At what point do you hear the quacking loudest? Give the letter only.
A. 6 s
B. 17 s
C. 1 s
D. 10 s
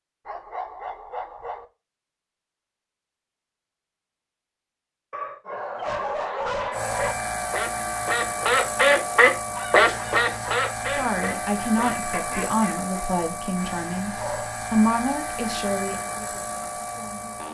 D.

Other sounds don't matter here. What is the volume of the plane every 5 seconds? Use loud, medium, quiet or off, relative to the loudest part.
off, loud, loud, loud.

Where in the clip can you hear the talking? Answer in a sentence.
The talking can be heard from 10.8 to 17.4 s.